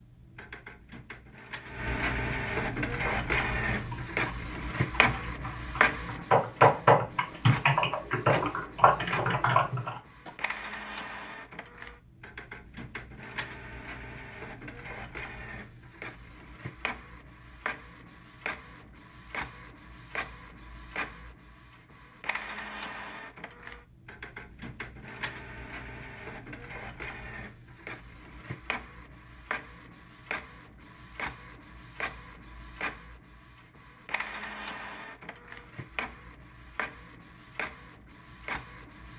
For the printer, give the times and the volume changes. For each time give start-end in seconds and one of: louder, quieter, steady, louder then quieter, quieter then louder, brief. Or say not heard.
0.0-39.1 quieter.